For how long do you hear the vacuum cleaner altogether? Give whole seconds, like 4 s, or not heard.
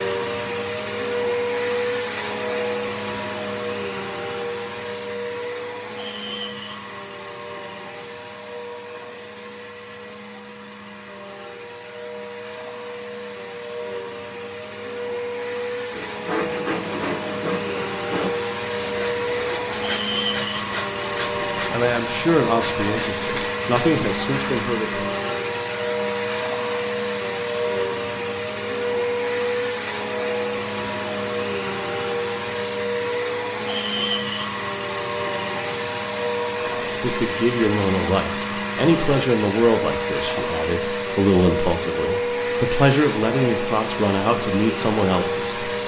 46 s.